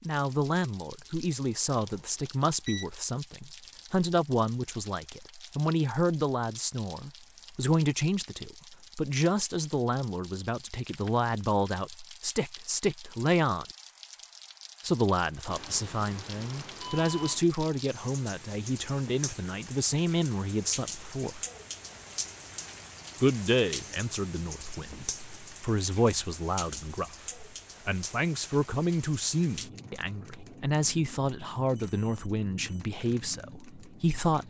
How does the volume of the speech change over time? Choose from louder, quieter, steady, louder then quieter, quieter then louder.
steady.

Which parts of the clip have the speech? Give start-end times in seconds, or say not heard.
0.1-13.7, 14.8-21.4, 23.2-34.4.